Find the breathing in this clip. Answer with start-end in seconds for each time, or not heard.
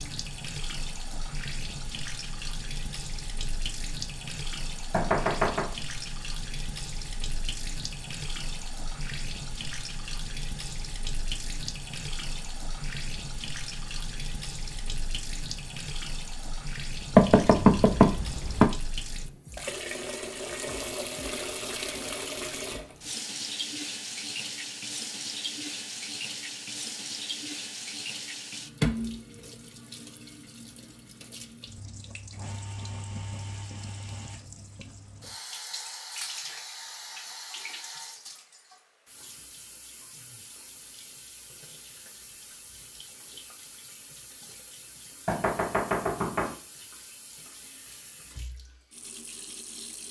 not heard.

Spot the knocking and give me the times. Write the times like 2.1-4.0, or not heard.
4.9-5.8, 17.1-18.7, 45.2-46.5.